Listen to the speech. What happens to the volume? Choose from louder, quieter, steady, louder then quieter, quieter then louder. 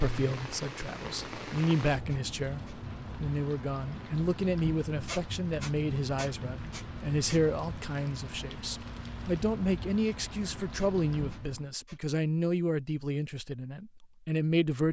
steady.